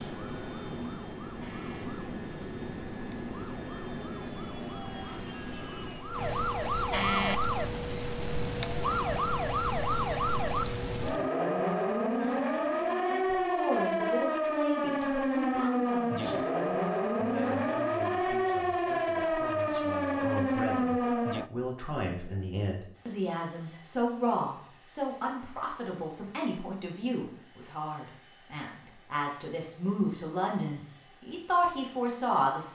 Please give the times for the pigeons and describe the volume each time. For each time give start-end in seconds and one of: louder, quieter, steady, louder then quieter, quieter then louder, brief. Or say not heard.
not heard.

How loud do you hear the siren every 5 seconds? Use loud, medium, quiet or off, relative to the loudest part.
quiet, loud, loud, loud, loud, off, off.